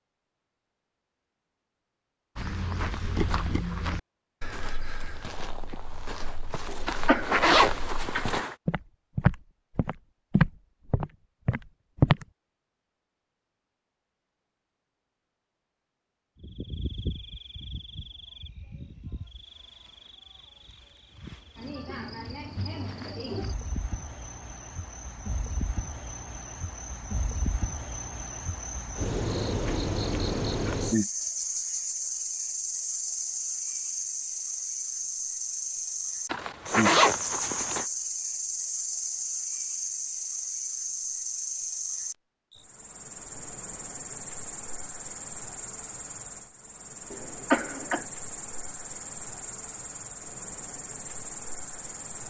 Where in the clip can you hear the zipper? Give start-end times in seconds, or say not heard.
6.8-8.6, 36.3-37.9.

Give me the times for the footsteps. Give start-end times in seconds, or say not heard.
2.4-12.2.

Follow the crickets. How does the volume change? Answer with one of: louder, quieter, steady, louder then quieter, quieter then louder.
louder then quieter.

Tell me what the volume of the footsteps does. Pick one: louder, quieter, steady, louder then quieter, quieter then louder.
quieter then louder.